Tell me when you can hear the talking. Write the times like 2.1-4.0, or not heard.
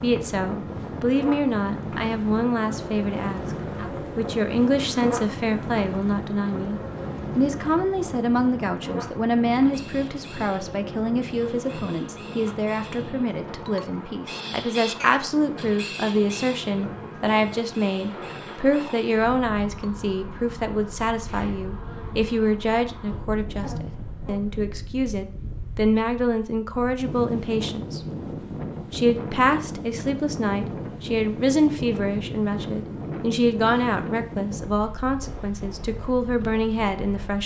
0.0-28.0, 28.9-37.4.